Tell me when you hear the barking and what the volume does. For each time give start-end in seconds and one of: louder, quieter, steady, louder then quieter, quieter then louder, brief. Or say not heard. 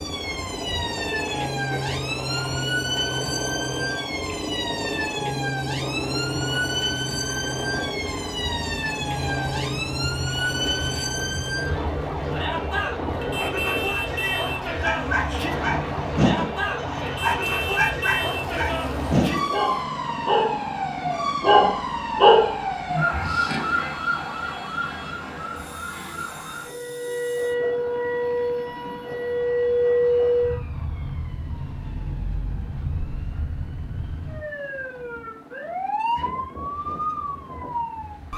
14.8-23.3 louder.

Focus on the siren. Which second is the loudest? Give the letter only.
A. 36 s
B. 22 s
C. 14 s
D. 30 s
D.